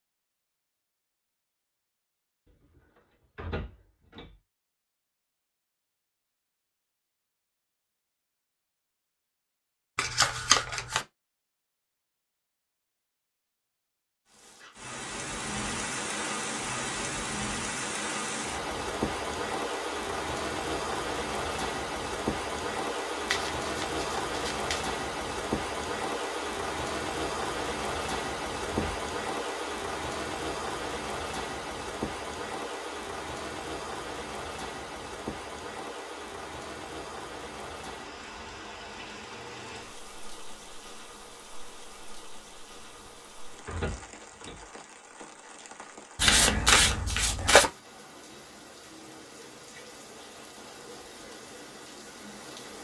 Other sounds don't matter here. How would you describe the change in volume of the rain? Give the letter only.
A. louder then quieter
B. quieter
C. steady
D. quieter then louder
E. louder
B.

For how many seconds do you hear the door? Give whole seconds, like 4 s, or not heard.
2 s.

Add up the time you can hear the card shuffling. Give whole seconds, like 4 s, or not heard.
4 s.